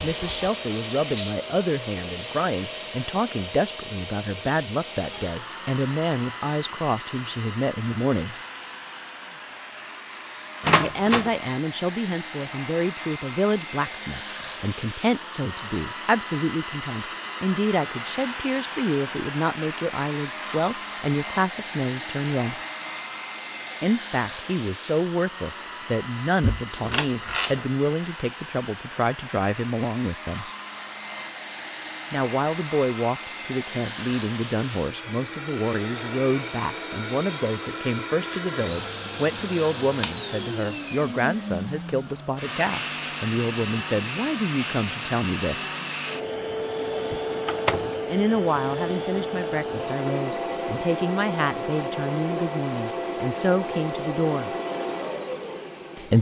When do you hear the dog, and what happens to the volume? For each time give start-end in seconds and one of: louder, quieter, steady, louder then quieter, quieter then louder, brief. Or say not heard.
not heard.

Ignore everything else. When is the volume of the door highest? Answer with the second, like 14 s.
11 s.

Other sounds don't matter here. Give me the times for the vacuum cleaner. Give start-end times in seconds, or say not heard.
0.0-56.1.